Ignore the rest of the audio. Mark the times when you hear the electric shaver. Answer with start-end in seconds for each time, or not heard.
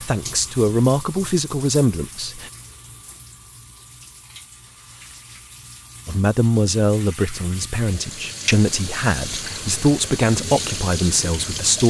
not heard.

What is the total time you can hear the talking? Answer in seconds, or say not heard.
8 s.